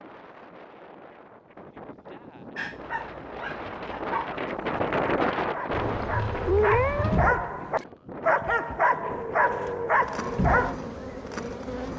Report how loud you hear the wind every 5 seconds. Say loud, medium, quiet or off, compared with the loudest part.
loud, loud, off.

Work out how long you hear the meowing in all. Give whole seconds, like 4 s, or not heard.
2 s.